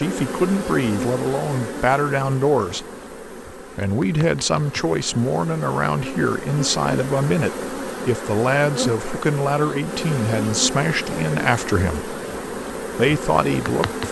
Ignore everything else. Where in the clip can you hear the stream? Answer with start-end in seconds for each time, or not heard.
not heard.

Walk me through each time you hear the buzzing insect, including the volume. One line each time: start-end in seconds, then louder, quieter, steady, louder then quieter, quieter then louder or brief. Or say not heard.
0.0-14.0 quieter then louder.